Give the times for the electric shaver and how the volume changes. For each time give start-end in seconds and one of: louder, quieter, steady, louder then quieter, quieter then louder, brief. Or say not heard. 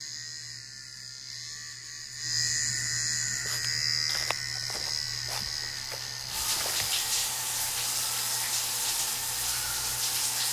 0.0-10.4 louder then quieter.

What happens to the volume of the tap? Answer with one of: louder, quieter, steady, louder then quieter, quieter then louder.
louder.